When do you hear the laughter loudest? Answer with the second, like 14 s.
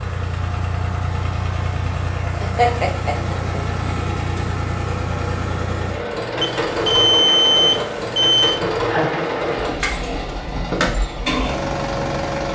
3 s.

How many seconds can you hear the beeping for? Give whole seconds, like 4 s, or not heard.
2 s.